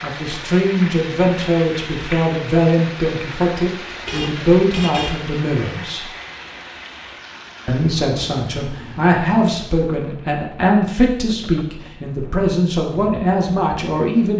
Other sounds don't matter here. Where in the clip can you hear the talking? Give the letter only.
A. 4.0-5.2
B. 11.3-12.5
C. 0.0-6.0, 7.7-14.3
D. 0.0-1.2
C.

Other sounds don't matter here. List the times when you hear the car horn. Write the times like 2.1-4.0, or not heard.
4.0-5.2.